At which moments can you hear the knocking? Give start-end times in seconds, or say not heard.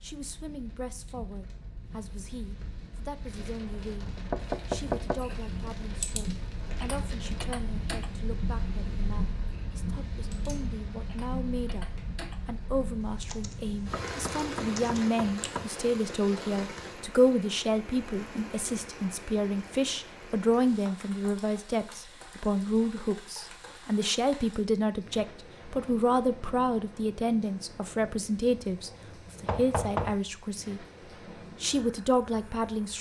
4.2-5.2, 13.7-15.7, 29.4-30.1.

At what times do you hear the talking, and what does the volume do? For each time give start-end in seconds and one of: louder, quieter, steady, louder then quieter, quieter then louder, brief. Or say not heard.
0.0-30.9 louder
31.6-32.9 brief.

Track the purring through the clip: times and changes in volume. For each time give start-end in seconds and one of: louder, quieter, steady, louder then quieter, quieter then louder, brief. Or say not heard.
not heard.